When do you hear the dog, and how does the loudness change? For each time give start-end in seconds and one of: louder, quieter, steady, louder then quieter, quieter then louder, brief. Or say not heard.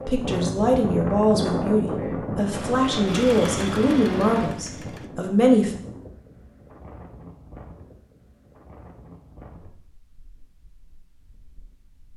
not heard.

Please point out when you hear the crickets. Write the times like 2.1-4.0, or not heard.
not heard.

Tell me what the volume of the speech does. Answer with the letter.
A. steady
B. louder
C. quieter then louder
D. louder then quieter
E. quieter
E.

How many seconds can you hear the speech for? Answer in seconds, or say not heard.
6 s.